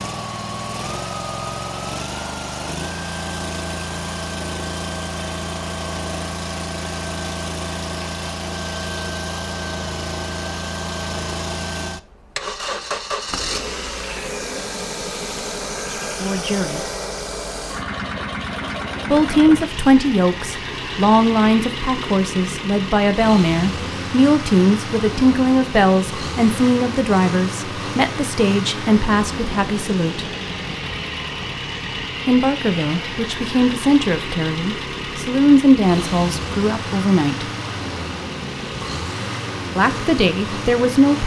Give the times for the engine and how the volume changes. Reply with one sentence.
You can hear the engine from 0.0 to 41.2 s, at a steady volume.